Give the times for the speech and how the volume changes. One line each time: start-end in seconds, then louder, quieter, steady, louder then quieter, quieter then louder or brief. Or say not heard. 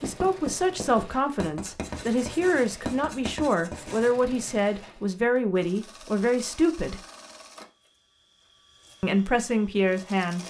0.0-7.0 steady
9.0-10.4 brief.